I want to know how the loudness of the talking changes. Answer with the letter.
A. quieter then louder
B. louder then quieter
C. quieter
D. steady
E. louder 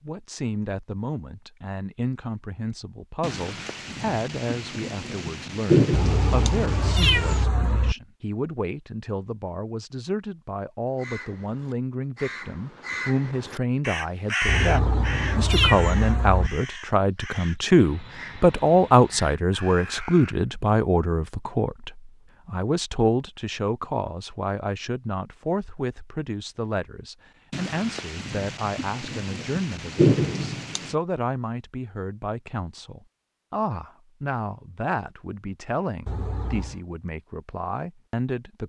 B.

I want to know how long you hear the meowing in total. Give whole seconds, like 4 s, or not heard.
5 s.